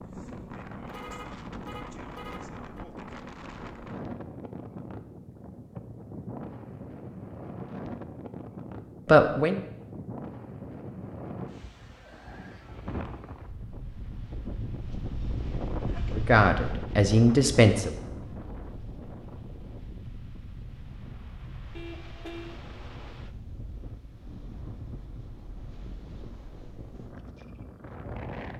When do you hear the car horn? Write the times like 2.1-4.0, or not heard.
0.8-2.9, 21.8-22.6.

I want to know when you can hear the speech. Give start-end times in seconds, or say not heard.
9.1-9.6, 16.1-17.9.